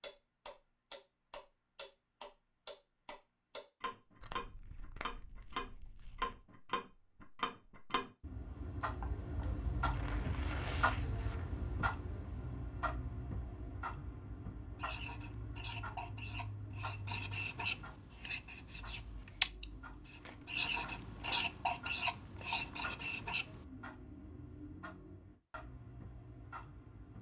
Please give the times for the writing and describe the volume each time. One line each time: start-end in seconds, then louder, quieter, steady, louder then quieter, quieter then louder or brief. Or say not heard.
14.8-23.4 louder then quieter.